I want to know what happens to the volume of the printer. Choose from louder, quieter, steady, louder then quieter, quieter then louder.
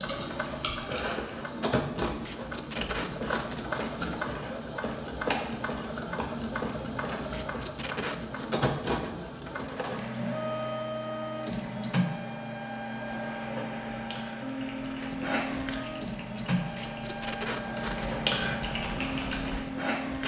steady.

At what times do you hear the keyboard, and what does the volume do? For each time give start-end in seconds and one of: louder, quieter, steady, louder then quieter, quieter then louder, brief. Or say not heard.
0.0-1.6 brief
13.9-19.6 louder.